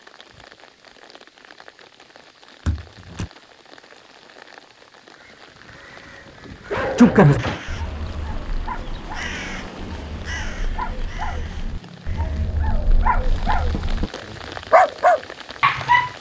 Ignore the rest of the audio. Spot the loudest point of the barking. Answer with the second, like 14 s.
7 s.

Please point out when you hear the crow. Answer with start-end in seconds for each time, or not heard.
5.2-12.5.